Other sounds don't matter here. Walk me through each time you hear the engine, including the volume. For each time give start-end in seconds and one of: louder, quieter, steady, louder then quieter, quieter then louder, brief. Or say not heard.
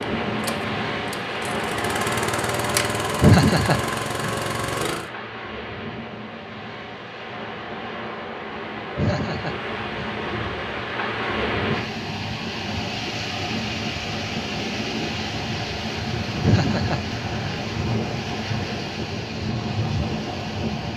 0.0-5.1 louder.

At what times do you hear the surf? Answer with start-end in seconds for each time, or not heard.
0.0-20.9.